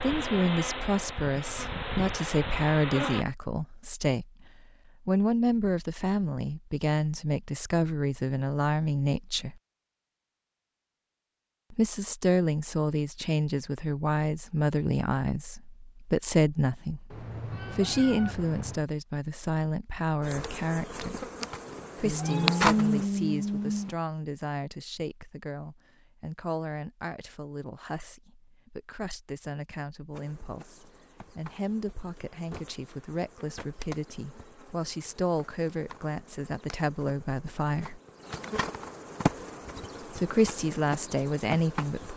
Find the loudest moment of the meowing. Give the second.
23 s.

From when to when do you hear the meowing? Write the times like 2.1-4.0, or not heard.
17.1-18.9, 22.1-23.9.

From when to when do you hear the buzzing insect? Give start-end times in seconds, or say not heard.
0.0-3.2, 20.2-23.1, 30.1-42.1.